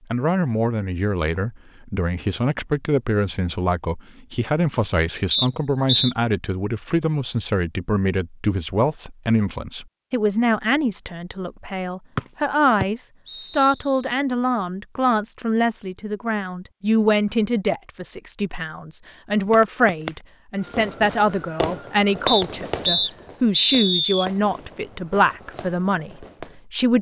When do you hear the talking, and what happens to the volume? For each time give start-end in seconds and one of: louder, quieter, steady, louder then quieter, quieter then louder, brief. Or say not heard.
0.1-26.9 steady.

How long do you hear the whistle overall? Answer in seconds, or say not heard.
4 s.